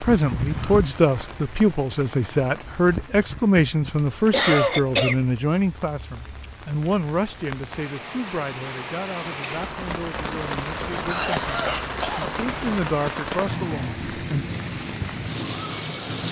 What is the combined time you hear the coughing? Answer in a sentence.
The coughing can be heard for 3 seconds in total.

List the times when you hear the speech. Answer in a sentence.
The speech can be heard from 0.0 to 14.4 s.